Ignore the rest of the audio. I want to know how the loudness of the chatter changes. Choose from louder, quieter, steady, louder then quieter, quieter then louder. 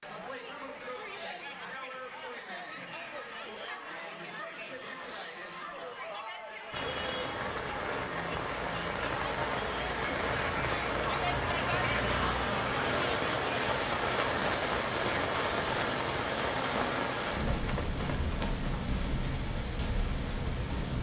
louder.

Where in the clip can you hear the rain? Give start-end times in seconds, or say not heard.
6.7-20.9.